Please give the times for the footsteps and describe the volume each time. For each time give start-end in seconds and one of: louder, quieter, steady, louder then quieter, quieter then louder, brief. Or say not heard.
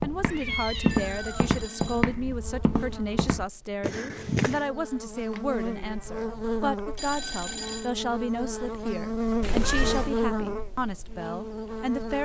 0.0-4.7 quieter.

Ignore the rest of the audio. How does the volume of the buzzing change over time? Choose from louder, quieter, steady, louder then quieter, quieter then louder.
louder.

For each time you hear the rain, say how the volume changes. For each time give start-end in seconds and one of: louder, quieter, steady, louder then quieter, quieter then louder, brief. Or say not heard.
not heard.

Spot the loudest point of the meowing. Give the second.
10 s.